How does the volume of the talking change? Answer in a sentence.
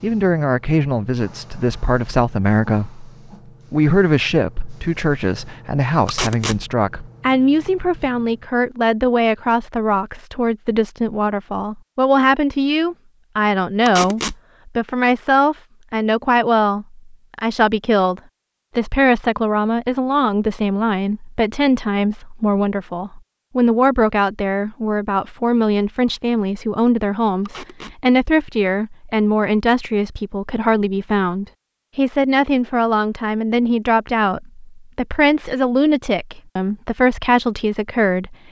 The volume of the talking stays about the same.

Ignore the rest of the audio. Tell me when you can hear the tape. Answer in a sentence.
The tape can be heard from 6.0 to 6.6 s, from 13.8 to 14.3 s and from 27.4 to 27.9 s.